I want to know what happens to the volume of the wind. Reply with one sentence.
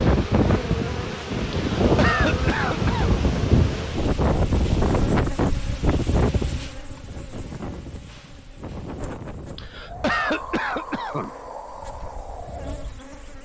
The volume of the wind goes down.